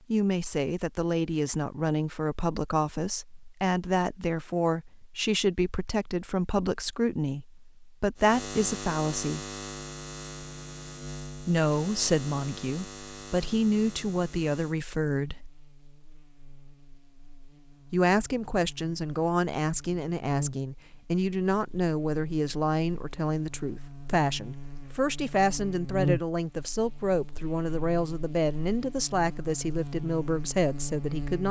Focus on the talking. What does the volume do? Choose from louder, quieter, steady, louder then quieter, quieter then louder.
steady.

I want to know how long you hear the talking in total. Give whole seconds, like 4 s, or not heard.
27 s.